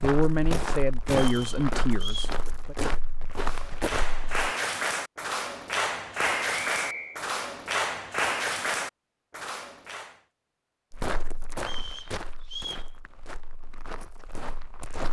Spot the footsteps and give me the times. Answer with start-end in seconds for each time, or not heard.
0.0-4.5, 10.9-15.0.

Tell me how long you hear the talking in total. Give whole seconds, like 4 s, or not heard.
3 s.